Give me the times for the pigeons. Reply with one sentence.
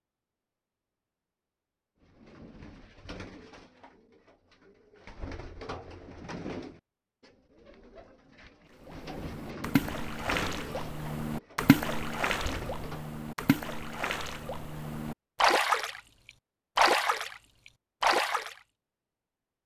The pigeons can be heard from 2.0 to 13.2 s.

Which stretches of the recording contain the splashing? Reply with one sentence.
The splashing can be heard from 8.8 to 16.0 s, from 16.8 to 17.4 s and from 18.0 to 18.6 s.